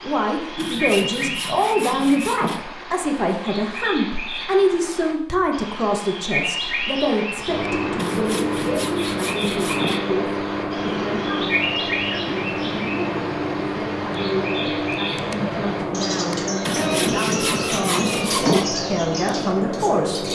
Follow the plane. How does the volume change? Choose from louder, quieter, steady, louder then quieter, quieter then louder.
steady.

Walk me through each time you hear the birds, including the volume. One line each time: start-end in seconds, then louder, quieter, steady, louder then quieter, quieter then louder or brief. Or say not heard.
0.0-20.3 steady.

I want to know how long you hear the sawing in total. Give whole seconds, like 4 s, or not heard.
6 s.